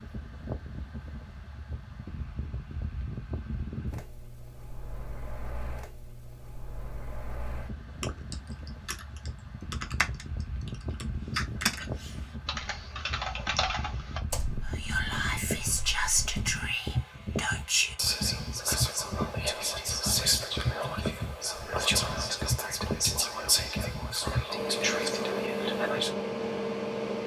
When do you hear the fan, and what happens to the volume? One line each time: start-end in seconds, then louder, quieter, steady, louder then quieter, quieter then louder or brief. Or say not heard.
0.0-27.2 louder.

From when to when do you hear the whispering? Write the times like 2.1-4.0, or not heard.
14.7-26.1.